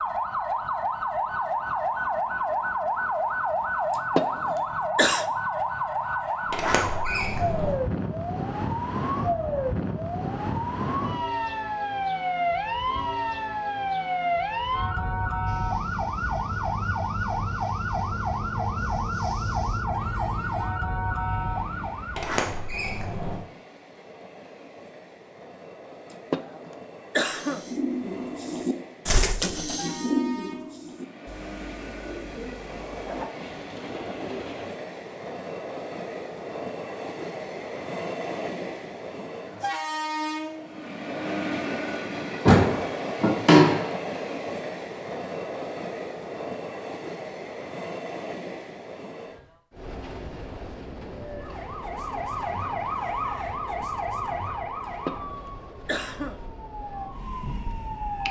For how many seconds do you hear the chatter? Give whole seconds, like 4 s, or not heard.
not heard.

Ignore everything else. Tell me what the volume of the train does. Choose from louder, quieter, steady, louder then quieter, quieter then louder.
louder then quieter.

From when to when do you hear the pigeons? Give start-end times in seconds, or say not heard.
27.2-34.8.